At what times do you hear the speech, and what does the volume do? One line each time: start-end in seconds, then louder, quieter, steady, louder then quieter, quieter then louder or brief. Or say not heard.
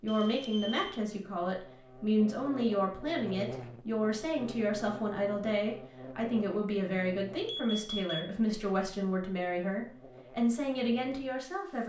0.0-11.8 steady.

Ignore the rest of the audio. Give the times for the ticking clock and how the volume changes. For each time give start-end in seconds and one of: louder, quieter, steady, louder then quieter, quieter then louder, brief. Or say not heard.
not heard.